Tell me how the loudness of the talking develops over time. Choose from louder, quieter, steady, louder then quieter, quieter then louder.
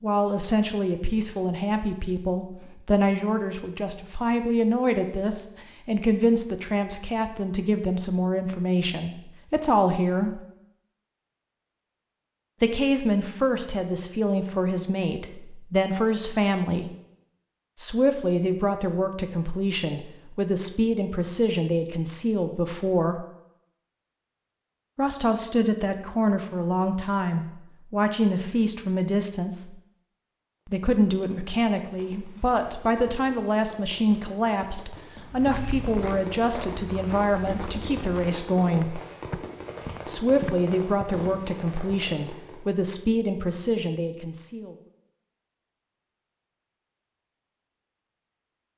steady.